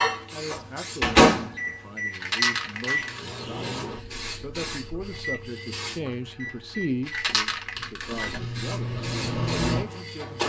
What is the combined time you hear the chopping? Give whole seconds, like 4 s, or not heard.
not heard.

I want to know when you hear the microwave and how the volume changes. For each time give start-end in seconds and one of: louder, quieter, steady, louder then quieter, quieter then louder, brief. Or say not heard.
0.0-10.4 quieter then louder.